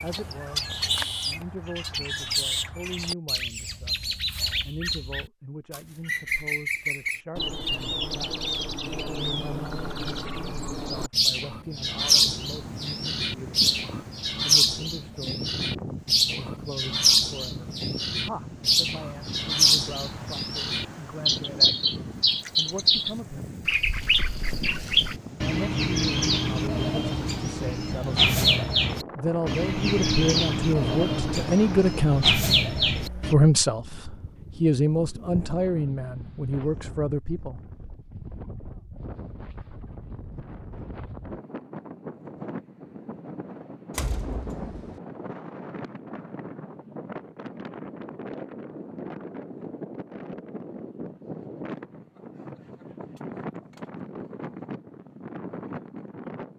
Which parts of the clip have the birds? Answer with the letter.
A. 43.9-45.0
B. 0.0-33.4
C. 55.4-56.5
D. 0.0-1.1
B.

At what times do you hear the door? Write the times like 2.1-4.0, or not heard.
43.9-45.0.